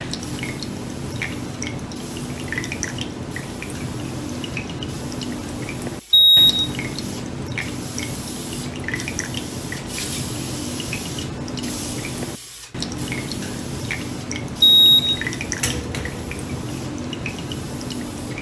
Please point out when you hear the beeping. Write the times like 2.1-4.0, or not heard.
6.1-6.7, 14.6-16.4.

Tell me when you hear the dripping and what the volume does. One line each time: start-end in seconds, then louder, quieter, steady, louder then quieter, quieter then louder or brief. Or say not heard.
0.0-18.3 steady.